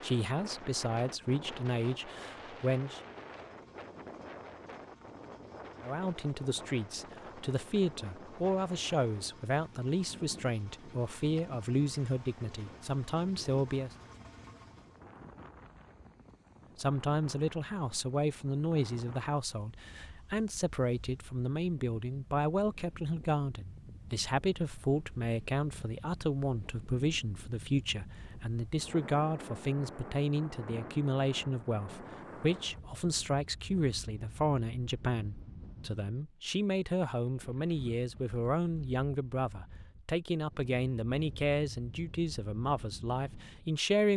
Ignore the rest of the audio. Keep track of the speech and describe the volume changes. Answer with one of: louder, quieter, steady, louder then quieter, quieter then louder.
steady.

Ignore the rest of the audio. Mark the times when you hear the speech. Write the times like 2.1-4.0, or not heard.
0.0-3.0, 5.8-13.9, 16.8-44.1.